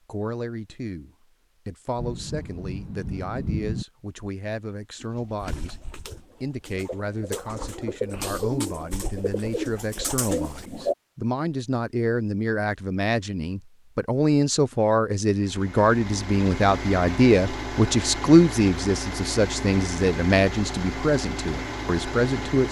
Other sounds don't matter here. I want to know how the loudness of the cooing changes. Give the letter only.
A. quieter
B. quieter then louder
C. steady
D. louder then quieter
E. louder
E.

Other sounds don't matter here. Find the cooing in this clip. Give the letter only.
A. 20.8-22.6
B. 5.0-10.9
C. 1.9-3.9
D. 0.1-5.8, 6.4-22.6
B.